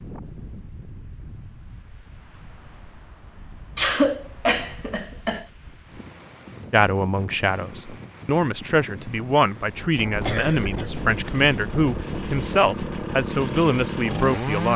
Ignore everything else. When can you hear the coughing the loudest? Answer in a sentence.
The volume of the coughing peaks at 4 seconds.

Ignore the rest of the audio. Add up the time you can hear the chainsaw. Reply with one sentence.
You can hear the chainsaw for 4 seconds altogether.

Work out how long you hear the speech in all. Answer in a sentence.
The speech can be heard for 8 seconds in total.